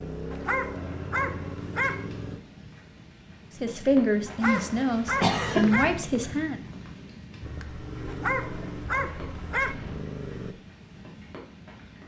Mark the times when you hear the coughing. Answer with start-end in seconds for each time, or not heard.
4.4-5.7.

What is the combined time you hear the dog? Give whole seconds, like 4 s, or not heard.
5 s.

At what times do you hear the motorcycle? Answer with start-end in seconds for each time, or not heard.
0.0-2.4, 7.4-10.6.